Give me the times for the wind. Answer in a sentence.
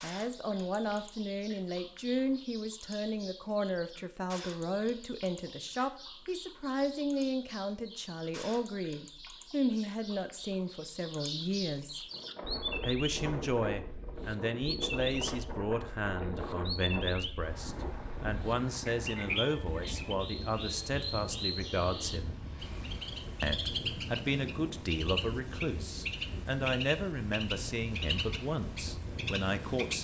You can hear the wind from 12.1 to 30.0 s.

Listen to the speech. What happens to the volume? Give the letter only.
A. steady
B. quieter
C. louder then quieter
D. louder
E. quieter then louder
A.